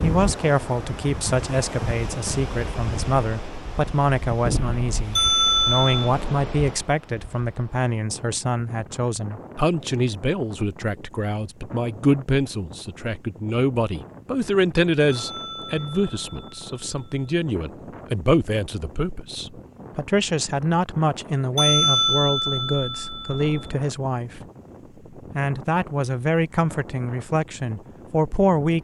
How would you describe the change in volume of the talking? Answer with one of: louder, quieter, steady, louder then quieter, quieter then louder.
steady.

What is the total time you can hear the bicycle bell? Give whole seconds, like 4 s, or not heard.
5 s.